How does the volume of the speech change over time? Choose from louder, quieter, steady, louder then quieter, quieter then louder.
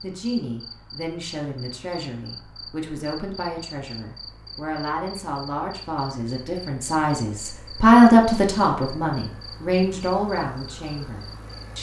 louder then quieter.